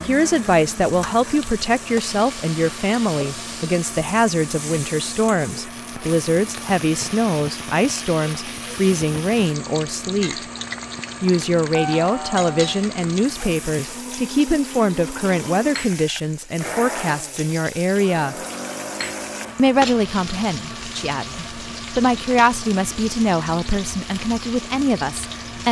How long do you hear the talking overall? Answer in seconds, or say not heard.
24 s.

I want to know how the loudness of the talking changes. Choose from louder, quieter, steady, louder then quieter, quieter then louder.
steady.